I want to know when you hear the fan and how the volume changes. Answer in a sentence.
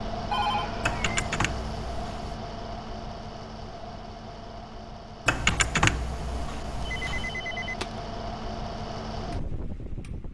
The fan can be heard from 0.0 to 10.2 s, getting quieter then louder.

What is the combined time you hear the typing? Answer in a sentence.
The typing can be heard for 4 seconds in total.